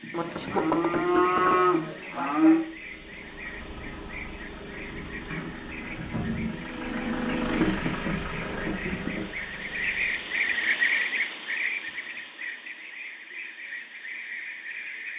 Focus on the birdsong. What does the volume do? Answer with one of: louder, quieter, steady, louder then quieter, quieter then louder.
louder then quieter.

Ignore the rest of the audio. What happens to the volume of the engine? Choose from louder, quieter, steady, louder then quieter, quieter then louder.
louder then quieter.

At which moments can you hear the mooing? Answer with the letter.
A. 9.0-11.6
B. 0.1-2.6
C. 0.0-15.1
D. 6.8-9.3
B.